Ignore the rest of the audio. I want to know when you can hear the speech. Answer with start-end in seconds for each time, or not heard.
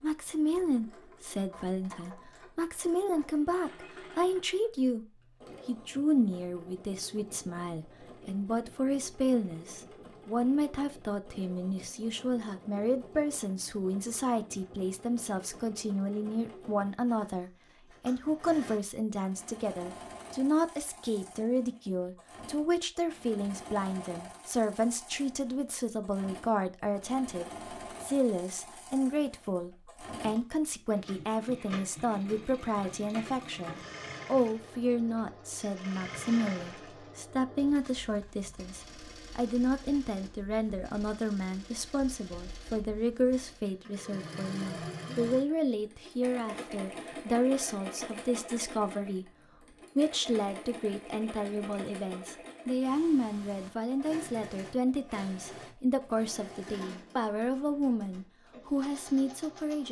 0.0-49.3, 50.0-59.8.